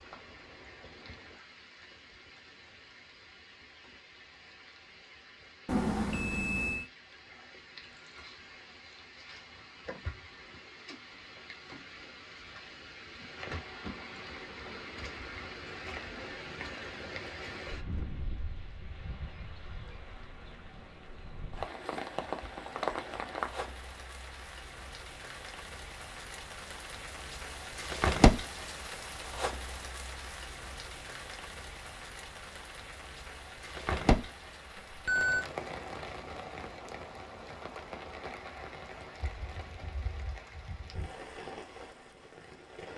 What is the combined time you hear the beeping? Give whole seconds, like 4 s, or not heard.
2 s.